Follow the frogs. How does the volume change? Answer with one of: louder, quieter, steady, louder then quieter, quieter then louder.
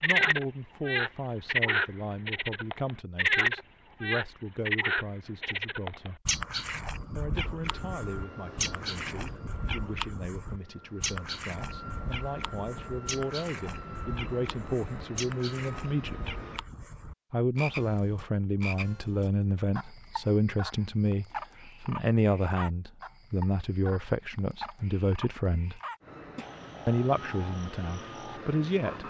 quieter.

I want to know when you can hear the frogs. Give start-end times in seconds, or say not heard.
0.0-29.0.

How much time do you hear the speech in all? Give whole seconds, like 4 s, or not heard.
26 s.